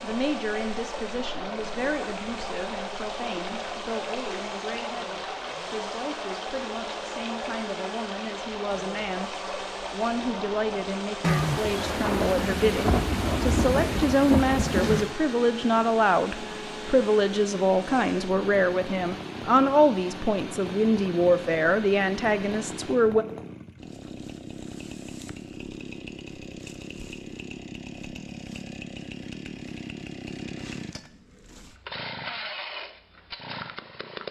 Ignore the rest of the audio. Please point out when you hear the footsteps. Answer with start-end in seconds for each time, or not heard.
not heard.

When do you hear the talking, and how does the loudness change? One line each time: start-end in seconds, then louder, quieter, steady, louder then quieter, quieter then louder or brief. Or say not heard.
0.0-23.2 louder.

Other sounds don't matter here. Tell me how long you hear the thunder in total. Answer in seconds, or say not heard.
4 s.